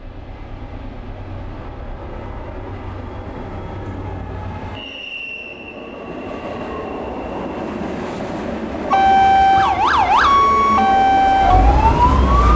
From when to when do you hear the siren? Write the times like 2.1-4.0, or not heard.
8.9-12.5.